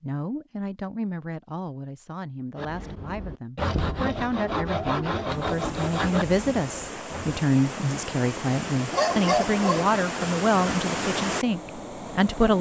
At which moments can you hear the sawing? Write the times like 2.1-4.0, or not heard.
2.5-7.4.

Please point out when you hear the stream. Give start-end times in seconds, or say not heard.
5.3-12.5.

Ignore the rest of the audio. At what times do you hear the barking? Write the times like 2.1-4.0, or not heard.
8.9-9.9.